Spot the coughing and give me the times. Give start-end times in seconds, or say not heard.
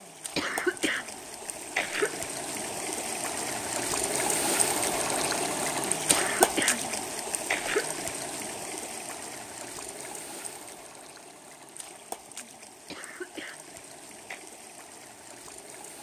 0.3-2.2, 6.1-8.0, 12.9-14.4.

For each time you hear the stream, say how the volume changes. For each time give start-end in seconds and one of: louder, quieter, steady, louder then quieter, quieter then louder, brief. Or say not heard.
0.0-15.9 louder then quieter.